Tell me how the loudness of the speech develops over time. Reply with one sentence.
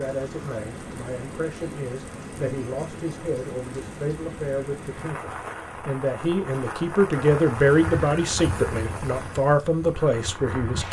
The loudness of the speech goes up.